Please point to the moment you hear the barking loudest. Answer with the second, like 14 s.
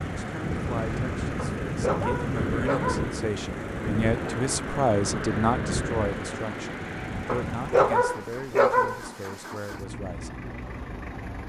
8 s.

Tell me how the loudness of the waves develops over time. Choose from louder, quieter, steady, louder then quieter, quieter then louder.
quieter.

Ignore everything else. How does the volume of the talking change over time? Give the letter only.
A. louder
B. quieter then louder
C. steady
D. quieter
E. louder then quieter
E.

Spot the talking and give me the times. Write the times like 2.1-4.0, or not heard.
0.0-10.5.